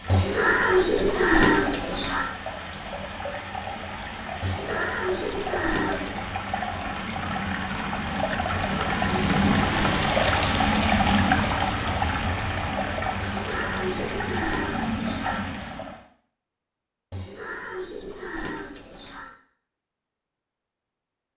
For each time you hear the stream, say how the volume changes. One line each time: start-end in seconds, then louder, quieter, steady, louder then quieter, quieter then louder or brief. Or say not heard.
0.0-16.0 louder then quieter.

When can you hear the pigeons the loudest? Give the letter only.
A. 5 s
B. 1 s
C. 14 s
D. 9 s
B.